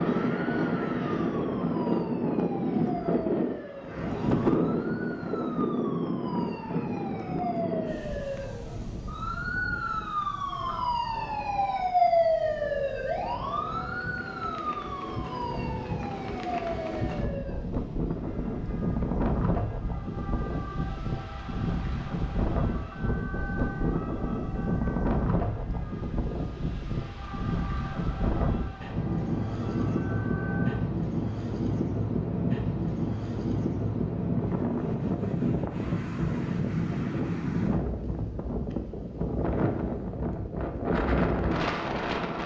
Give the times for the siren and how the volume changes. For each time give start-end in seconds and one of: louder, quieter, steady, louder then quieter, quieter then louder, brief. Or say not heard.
0.1-30.9 louder then quieter.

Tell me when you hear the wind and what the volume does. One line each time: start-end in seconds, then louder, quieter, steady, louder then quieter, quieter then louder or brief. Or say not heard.
0.0-42.4 quieter then louder.